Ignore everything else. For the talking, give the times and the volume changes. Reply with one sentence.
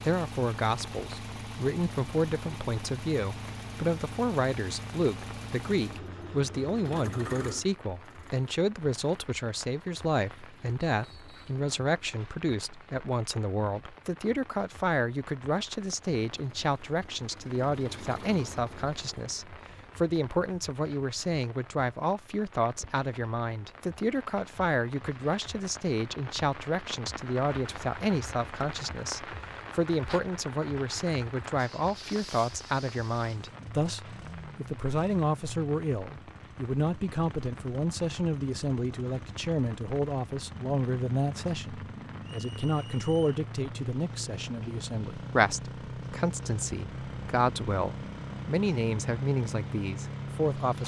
The talking can be heard from 0.0 to 50.8 s, at a steady volume.